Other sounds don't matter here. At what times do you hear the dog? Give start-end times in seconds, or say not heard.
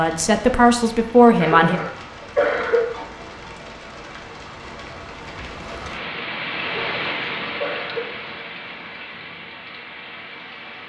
not heard.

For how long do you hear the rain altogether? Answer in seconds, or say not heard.
11 s.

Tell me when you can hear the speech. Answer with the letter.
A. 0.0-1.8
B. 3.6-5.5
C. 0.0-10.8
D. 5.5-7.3
A.